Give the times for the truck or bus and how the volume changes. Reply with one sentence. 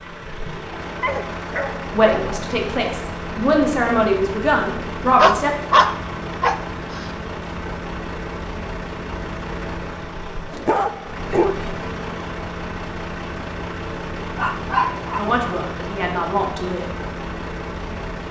The truck or bus can be heard from 0.0 to 18.2 s, at a steady volume.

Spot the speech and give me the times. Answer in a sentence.
The speech can be heard from 1.9 to 5.5 s and from 15.2 to 16.9 s.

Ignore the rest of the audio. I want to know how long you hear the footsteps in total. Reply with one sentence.
The footsteps can't be heard in this clip.